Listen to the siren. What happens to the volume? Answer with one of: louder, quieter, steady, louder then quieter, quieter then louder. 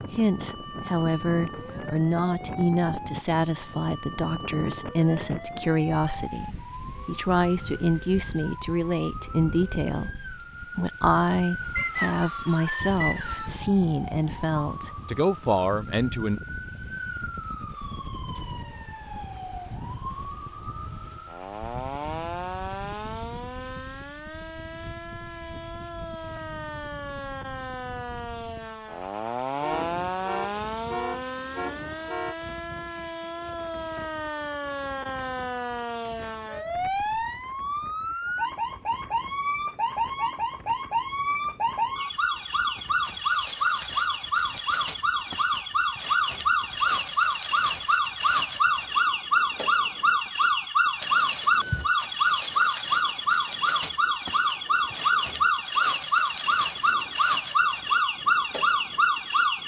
louder.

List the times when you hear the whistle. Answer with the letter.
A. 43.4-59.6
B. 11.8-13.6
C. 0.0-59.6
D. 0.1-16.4
B.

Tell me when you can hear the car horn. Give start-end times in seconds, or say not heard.
29.6-32.4.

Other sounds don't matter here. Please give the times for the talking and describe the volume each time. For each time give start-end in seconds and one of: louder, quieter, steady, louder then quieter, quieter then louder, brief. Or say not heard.
0.1-16.4 steady.